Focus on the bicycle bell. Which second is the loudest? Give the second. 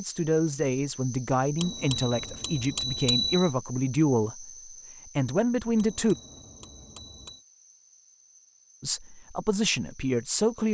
3 s.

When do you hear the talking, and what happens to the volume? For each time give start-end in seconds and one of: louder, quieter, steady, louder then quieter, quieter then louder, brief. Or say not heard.
0.0-6.2 steady
8.8-10.6 brief.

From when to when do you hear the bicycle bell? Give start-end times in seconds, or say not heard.
1.6-3.5, 5.8-7.5.